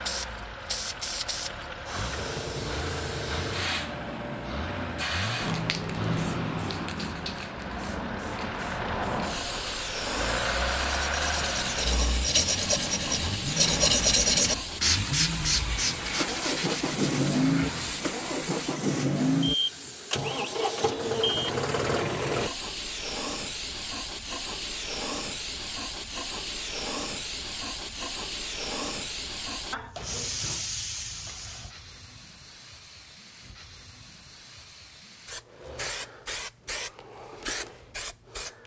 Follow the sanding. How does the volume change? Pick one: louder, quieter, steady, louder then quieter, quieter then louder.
louder then quieter.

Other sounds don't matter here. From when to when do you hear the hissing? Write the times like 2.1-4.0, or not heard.
0.0-38.6.